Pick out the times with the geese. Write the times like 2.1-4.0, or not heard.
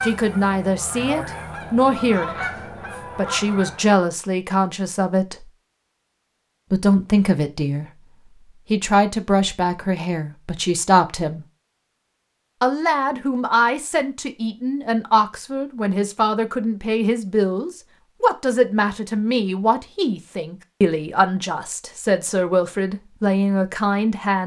0.0-4.0.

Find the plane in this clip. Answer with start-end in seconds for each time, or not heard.
not heard.